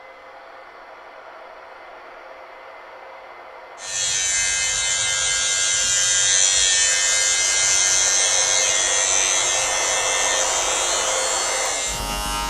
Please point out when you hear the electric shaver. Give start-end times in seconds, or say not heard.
3.8-12.4.